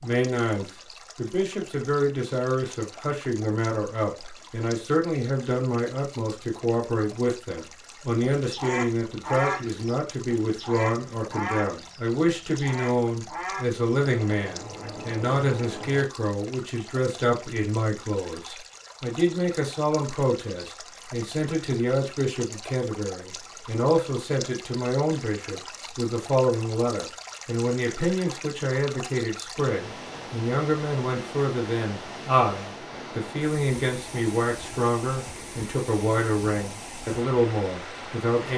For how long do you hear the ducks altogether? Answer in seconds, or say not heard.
8 s.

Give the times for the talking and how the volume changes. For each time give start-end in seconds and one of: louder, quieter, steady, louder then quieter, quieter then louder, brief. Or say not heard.
0.0-38.5 steady.